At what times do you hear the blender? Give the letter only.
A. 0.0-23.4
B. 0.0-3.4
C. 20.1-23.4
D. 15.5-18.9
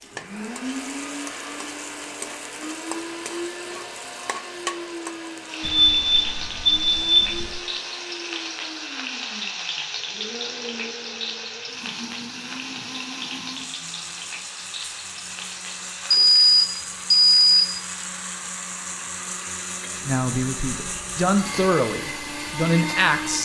A.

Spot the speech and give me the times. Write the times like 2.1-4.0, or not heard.
20.1-23.4.